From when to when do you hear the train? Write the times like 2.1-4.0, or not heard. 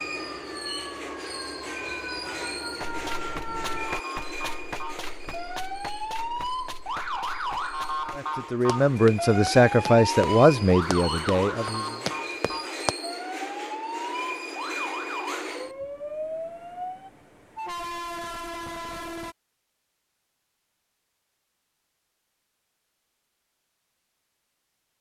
0.0-19.4.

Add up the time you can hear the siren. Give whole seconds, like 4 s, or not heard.
17 s.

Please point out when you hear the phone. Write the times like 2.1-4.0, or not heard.
not heard.